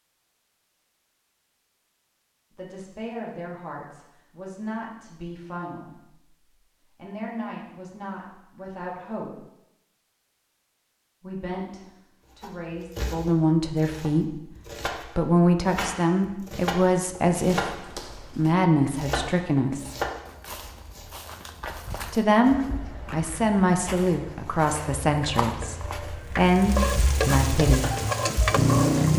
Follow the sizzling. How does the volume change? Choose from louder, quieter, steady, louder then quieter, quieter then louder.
louder.